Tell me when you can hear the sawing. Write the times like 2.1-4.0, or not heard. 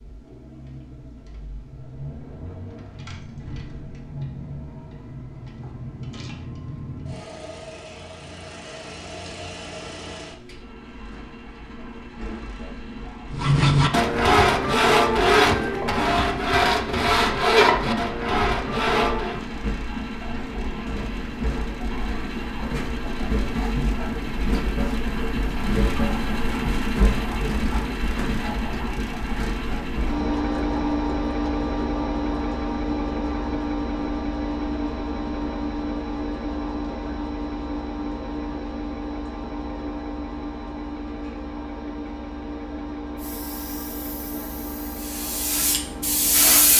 13.3-19.4.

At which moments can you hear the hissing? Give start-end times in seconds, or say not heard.
43.1-46.7.